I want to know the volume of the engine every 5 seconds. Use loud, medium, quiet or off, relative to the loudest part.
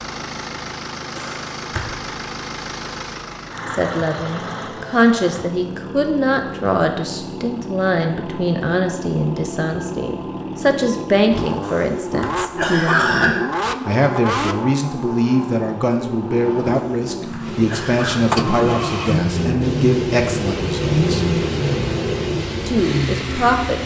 medium, medium, loud, loud, loud.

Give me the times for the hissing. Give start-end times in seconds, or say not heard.
17.4-23.8.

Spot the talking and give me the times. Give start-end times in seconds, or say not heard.
3.7-21.2, 22.6-23.8.